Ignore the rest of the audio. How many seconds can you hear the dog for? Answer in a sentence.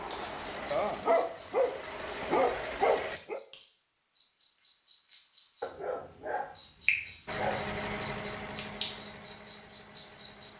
The dog can be heard for 5 seconds in total.